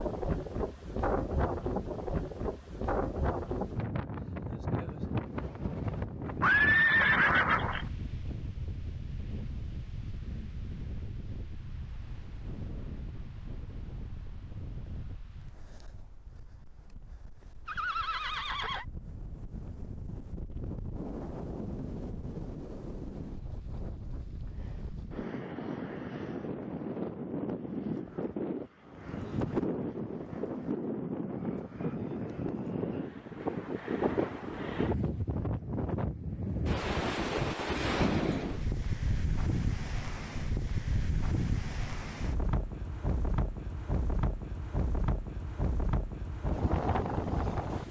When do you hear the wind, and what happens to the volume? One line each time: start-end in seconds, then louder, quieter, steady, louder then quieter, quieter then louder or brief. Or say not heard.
0.0-47.8 quieter then louder.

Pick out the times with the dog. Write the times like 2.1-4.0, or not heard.
not heard.